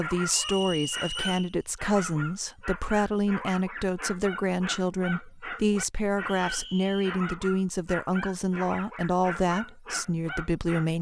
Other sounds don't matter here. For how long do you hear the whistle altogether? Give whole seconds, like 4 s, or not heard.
2 s.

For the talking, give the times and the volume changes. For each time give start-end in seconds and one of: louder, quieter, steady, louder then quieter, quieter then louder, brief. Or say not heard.
0.0-10.9 steady.